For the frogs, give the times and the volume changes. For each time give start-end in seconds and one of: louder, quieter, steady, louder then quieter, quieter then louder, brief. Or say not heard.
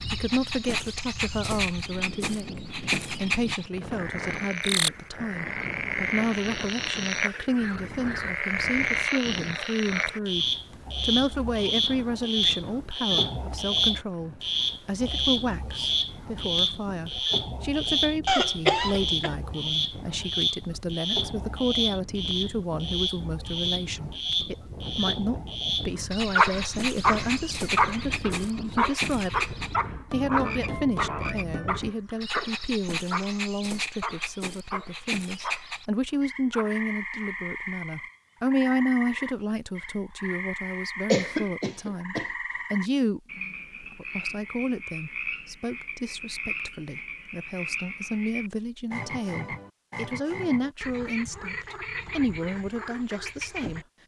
0.0-53.9 quieter.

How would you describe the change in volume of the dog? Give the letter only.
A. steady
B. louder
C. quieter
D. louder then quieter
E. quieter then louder
C.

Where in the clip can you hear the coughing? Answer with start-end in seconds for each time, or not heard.
18.2-19.4, 41.1-42.2.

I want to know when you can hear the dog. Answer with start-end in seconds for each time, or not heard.
26.4-37.3.